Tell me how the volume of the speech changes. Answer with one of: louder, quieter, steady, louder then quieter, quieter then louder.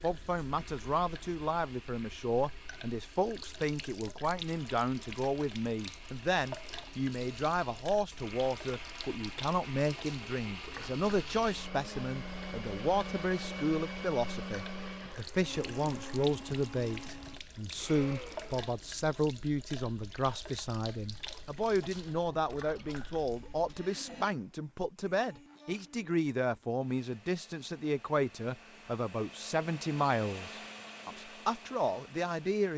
steady.